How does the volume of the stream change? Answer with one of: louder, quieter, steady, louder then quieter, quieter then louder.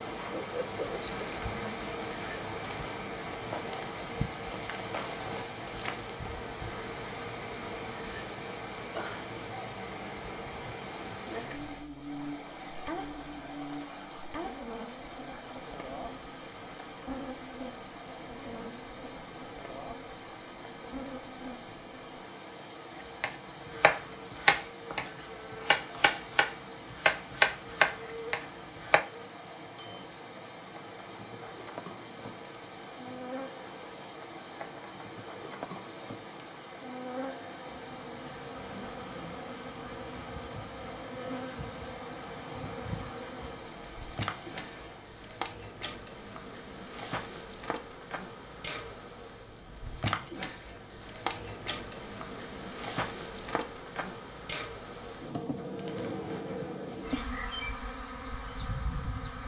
steady.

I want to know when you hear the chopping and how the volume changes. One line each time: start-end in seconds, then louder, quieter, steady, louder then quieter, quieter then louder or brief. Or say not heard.
23.2-29.0 quieter then louder.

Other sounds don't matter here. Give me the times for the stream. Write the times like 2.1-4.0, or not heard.
0.0-45.3.